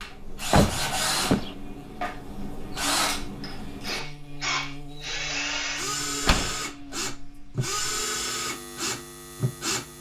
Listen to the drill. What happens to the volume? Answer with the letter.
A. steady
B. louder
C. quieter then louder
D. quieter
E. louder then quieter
A.